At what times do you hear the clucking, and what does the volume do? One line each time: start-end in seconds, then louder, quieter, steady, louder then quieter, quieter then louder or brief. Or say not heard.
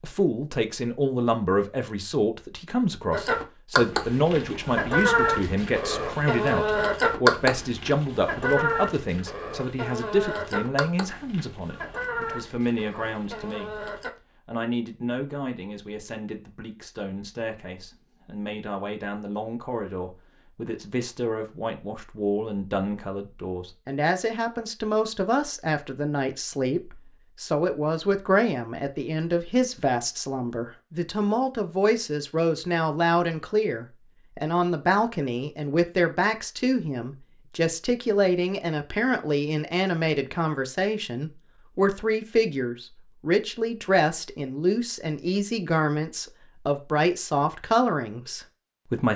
3.1-14.1 quieter.